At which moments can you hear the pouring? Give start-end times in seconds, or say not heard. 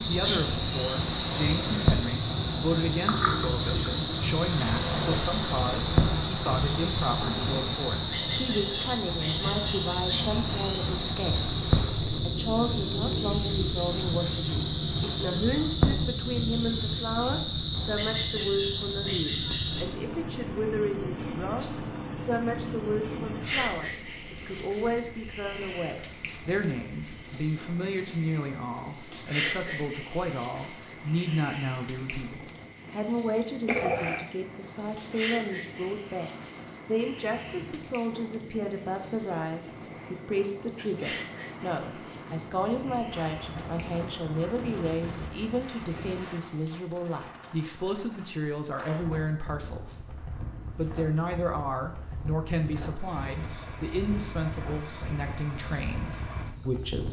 3.0-3.8, 33.6-34.3.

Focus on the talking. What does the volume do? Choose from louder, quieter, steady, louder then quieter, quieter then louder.
steady.